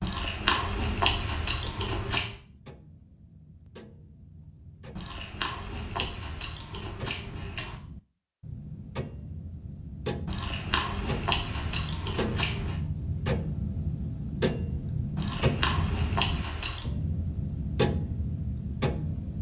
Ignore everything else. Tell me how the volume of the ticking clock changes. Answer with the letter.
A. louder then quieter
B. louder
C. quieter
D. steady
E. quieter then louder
B.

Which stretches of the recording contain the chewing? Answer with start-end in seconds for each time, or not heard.
0.0-2.4, 5.0-7.8, 10.2-12.8, 15.2-16.9.